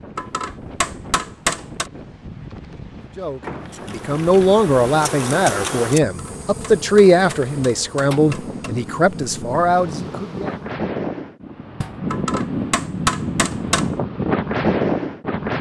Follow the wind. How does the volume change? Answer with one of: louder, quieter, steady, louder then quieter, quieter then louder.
louder.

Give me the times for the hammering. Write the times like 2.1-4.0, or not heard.
0.1-1.9, 6.0-8.8, 12.1-13.9.